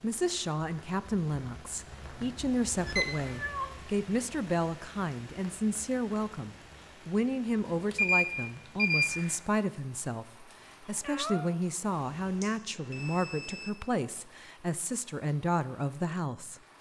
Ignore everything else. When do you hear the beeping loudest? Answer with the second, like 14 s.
8 s.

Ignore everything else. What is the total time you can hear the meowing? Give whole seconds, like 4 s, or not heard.
2 s.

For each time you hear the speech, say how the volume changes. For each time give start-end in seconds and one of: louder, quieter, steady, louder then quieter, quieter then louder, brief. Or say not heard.
0.0-16.6 steady.